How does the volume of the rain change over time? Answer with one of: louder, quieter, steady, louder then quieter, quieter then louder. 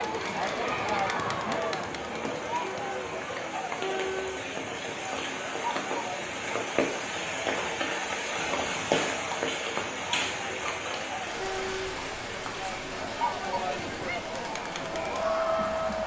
louder then quieter.